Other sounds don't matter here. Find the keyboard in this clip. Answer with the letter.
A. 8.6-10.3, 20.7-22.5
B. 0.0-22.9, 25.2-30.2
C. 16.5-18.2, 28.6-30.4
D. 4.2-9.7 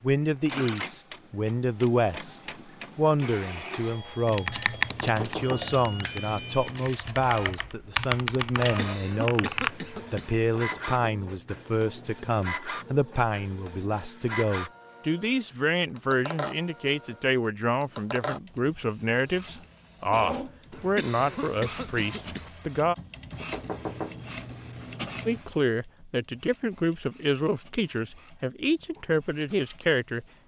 D.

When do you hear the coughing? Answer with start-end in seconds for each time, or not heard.
8.6-10.3, 20.7-22.5.